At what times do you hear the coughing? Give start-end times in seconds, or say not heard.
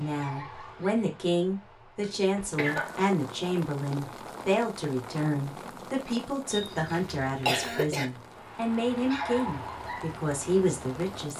2.0-3.0, 6.5-8.1.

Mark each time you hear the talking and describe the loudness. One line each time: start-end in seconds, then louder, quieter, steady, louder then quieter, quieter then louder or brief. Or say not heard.
0.0-11.3 steady.